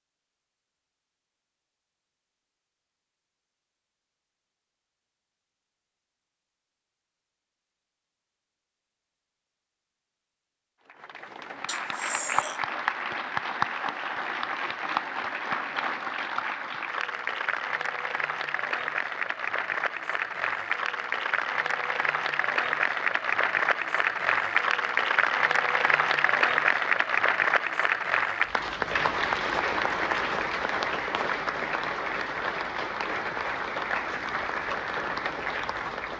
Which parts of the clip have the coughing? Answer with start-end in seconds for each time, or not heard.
11.7-12.6.